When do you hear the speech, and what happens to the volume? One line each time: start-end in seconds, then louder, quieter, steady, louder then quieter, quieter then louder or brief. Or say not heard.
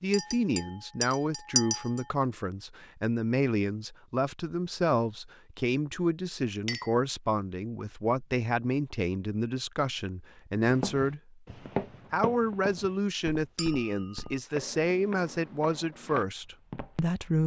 0.0-11.4 steady
12.1-17.4 steady.